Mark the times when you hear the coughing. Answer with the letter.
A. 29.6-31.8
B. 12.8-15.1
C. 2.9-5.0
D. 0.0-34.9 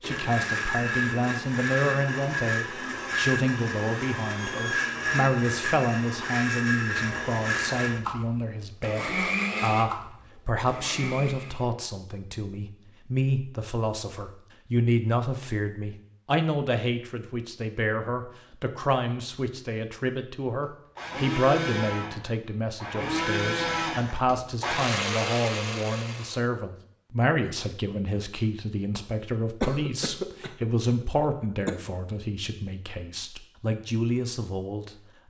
A.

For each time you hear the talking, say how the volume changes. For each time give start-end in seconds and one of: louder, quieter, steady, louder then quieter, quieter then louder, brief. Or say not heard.
0.0-34.9 steady.